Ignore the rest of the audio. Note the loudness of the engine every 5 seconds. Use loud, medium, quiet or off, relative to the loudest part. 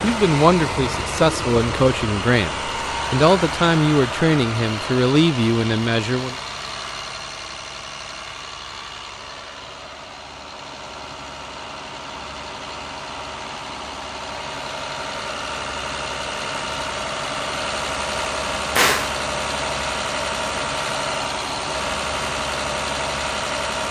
loud, medium, medium, loud, loud.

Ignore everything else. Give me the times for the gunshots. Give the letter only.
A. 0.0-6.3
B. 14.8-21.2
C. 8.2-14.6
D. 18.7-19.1
D.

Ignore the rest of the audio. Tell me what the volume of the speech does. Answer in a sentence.
The loudness of the speech stays about the same.